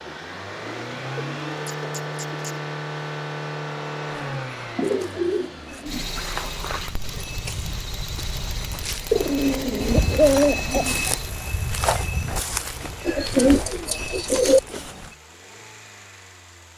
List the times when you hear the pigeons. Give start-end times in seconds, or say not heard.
0.7-2.5, 4.8-6.0, 9.1-11.0, 13.1-14.6.